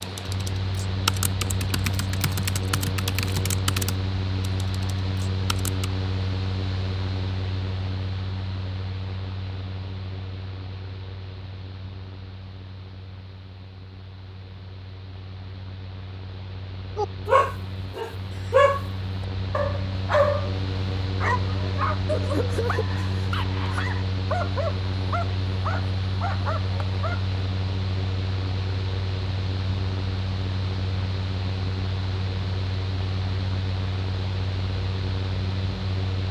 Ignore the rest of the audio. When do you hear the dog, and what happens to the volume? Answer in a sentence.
The dog can be heard from 16.9 to 27.3 s, getting quieter.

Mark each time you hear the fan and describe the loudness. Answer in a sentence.
The fan can be heard from 0.0 to 36.2 s, getting quieter then louder.